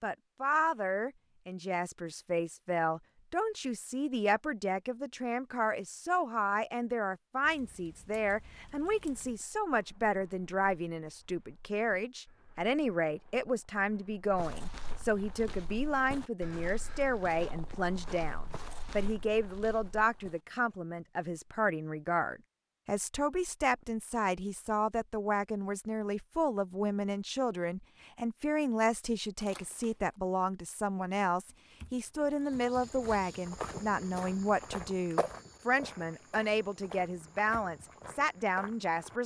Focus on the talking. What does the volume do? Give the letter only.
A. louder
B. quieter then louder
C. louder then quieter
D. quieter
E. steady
E.